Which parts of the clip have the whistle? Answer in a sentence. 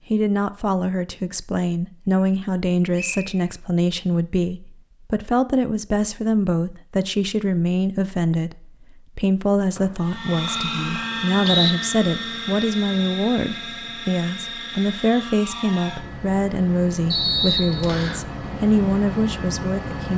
The whistle can be heard from 3.0 to 3.5 s, from 9.8 to 11.7 s and from 17.1 to 18.2 s.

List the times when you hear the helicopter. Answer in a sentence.
The helicopter can be heard from 10.0 to 20.1 s.